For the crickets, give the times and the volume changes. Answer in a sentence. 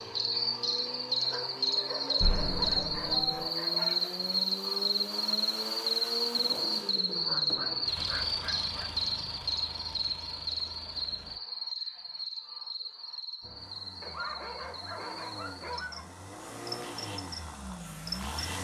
You can hear the crickets from 0.0 to 18.5 s, getting quieter.